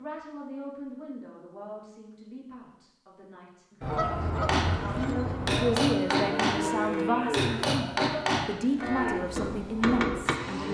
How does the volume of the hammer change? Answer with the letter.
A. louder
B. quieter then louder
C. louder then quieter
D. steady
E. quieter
D.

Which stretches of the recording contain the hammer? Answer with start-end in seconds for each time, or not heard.
4.4-10.3.